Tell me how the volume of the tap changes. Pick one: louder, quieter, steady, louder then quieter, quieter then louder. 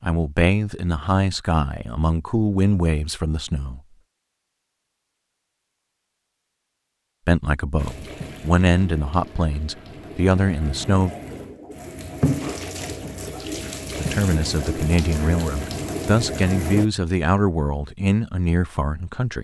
louder.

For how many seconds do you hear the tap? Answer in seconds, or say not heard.
9 s.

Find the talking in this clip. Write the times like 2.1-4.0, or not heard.
0.0-3.8, 7.2-11.1, 13.9-19.3.